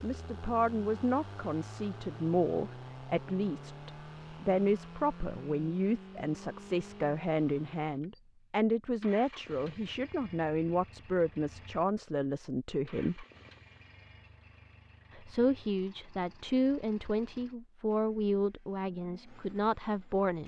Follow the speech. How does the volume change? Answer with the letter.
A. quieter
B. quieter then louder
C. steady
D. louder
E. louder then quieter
C.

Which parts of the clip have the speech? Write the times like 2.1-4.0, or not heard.
0.0-13.2, 15.2-20.4.